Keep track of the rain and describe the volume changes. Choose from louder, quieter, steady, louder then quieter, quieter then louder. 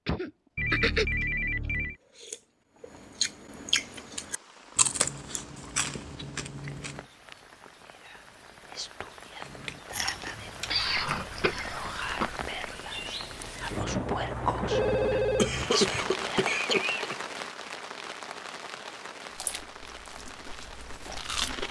louder then quieter.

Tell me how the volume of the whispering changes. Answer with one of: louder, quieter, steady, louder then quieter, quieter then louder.
louder.